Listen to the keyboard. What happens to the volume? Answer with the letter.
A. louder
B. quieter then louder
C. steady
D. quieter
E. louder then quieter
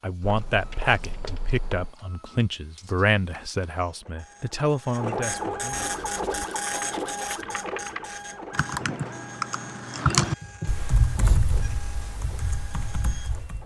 E.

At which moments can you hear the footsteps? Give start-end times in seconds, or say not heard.
not heard.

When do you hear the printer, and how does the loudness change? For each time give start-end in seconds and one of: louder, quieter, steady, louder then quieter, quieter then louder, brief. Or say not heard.
0.0-13.6 louder then quieter.